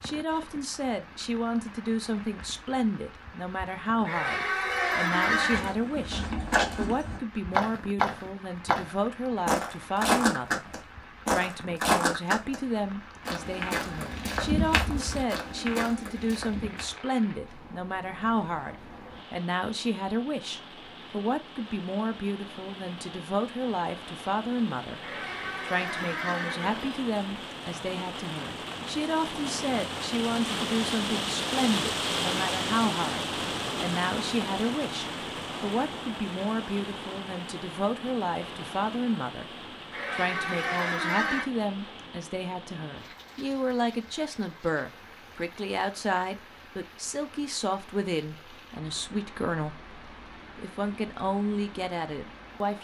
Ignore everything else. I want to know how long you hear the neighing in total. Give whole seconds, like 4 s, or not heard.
5 s.